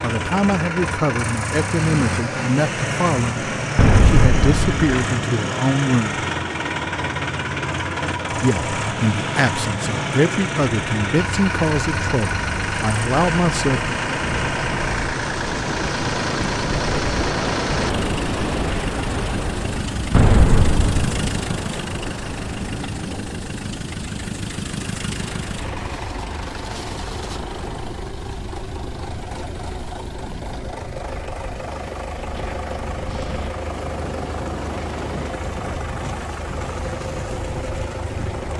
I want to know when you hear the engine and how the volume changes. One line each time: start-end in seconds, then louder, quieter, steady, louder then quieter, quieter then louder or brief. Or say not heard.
0.0-38.5 quieter.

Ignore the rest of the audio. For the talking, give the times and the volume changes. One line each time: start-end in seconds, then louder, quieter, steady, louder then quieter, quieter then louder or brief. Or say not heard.
0.0-6.2 steady
8.3-13.9 steady.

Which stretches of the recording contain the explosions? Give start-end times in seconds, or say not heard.
3.8-4.8, 20.1-21.4.